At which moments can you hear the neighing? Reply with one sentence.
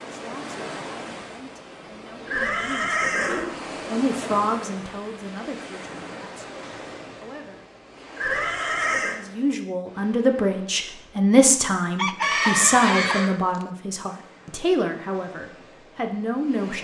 You can hear the neighing from 2.2 to 3.6 s, from 8.2 to 9.2 s and from 12.2 to 13.3 s.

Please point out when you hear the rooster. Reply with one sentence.
The rooster can be heard from 11.9 to 13.7 s.